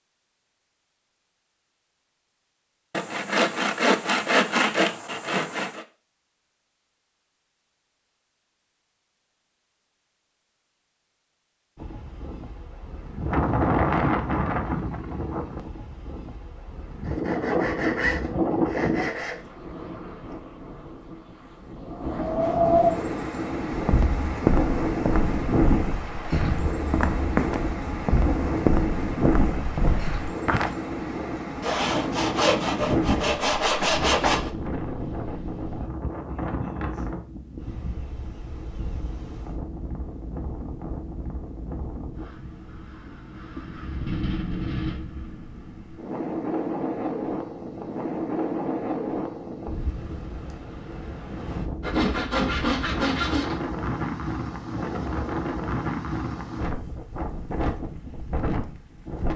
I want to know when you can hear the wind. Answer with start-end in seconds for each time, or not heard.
11.8-59.3.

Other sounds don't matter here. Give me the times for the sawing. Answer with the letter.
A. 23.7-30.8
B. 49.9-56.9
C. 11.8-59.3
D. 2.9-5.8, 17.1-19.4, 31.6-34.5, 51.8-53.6
D.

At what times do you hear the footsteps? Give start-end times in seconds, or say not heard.
23.7-30.8.